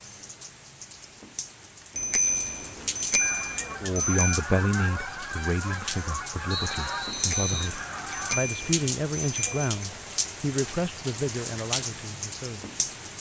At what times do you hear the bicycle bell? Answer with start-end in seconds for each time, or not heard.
1.9-4.4, 7.1-9.9.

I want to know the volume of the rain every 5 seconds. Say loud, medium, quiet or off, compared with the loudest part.
medium, loud, loud.